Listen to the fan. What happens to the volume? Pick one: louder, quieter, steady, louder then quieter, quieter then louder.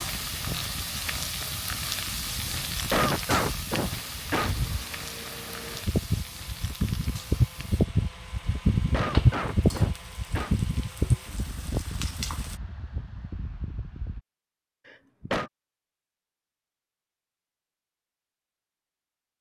louder then quieter.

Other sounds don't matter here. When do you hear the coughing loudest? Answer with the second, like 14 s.
3 s.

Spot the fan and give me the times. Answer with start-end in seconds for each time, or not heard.
0.2-14.2.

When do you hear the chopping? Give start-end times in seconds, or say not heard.
not heard.